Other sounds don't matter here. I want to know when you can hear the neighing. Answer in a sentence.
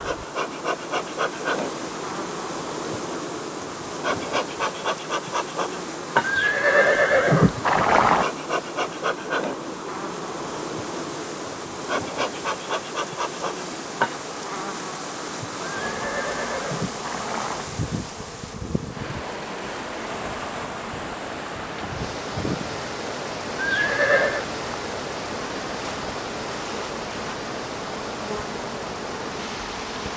The neighing can be heard from 6.2 to 8.2 s, from 15.8 to 17.6 s and from 23.6 to 24.5 s.